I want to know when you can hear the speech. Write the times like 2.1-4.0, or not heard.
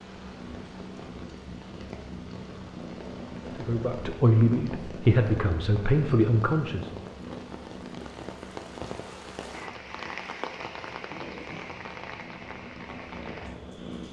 3.5-7.0.